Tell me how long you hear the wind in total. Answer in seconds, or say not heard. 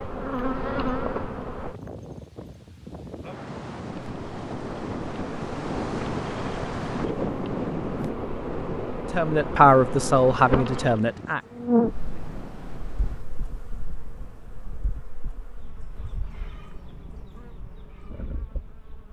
15 s.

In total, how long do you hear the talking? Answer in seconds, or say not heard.
2 s.